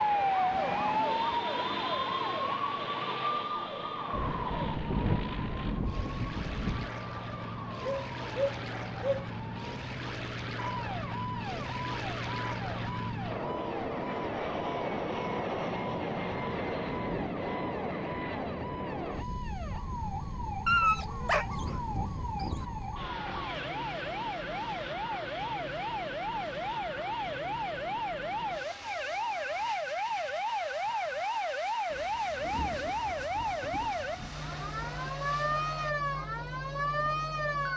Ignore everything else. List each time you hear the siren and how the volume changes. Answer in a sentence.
The siren can be heard from 0.0 to 37.7 s, getting quieter then louder.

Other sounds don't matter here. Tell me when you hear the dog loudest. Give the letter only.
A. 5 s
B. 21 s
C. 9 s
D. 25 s
B.